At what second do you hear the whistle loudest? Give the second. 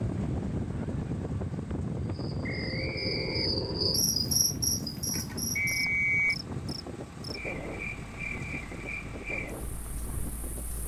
6 s.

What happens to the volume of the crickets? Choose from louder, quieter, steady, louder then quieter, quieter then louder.
quieter.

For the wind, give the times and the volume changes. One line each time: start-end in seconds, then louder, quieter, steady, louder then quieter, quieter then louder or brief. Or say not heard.
0.0-10.8 quieter.